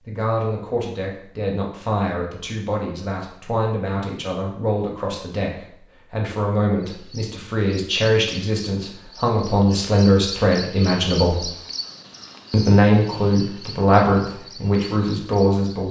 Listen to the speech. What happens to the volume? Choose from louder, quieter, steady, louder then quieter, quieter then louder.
louder.